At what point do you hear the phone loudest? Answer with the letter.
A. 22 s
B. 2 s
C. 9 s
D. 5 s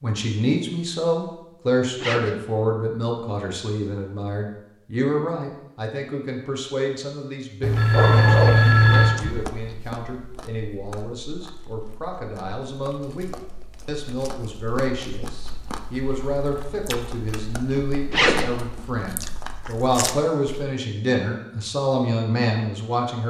C.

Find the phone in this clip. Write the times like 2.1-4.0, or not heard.
7.6-9.2.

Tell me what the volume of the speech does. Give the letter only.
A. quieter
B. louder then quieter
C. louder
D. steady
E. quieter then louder
E.